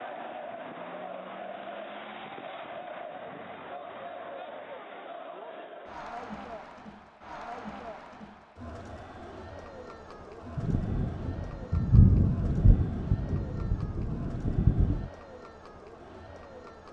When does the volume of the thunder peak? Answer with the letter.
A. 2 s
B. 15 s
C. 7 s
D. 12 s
D.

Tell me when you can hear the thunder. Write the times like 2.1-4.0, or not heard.
10.6-15.1.